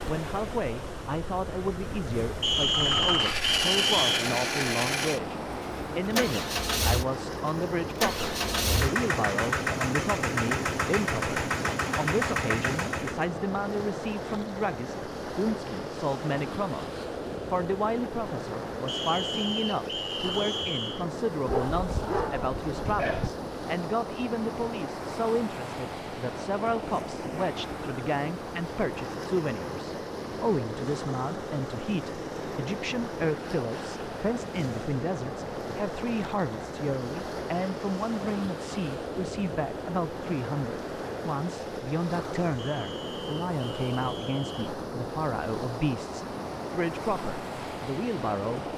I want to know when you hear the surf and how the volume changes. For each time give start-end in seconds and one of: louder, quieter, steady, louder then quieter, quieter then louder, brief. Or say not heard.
0.0-48.7 steady.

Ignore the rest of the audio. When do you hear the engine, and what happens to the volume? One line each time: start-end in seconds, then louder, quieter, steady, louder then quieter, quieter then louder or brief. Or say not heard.
2.5-13.3 steady.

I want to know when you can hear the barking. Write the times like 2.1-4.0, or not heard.
21.4-23.3.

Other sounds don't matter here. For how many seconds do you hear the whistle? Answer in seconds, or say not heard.
6 s.